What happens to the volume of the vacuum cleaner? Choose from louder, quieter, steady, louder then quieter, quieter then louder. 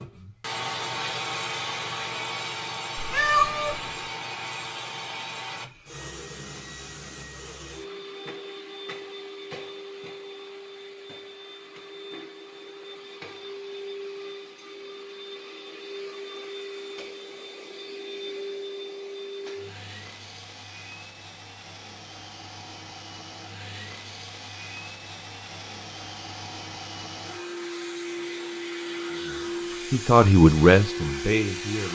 quieter then louder.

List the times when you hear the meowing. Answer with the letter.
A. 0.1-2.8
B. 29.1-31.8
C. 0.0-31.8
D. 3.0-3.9
D.